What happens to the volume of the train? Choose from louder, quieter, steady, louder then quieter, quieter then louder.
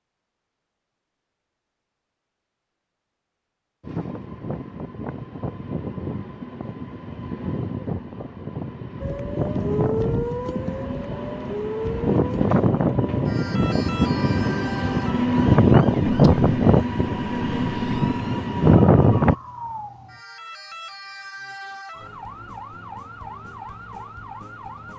louder.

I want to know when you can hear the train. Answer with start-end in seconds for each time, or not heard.
3.8-19.4.